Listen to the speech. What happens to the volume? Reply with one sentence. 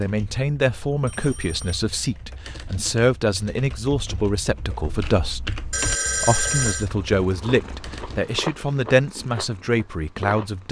The loudness of the speech stays about the same.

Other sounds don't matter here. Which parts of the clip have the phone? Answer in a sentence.
The phone can be heard from 1.1 to 2.3 s and from 5.7 to 6.8 s.